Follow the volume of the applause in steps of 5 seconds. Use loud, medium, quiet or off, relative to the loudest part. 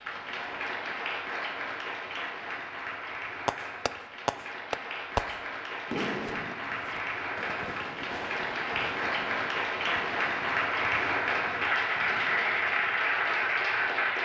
medium, medium, loud.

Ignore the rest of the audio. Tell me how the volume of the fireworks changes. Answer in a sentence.
The loudness of the fireworks goes down.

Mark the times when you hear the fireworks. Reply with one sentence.
The fireworks can be heard from 3.5 to 13.0 s.